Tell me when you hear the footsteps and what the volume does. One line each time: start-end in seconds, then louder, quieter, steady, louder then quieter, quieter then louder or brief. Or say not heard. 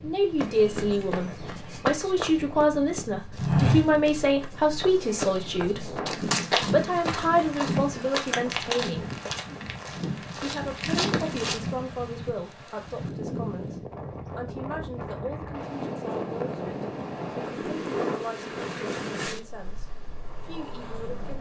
0.3-11.8 louder then quieter.